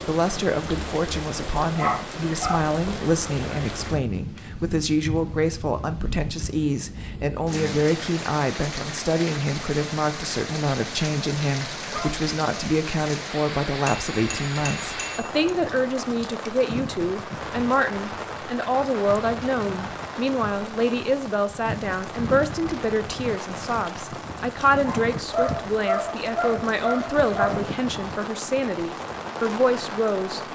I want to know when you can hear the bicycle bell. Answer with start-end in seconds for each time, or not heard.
13.8-15.3.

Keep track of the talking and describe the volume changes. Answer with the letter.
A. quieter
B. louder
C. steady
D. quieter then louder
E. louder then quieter
C.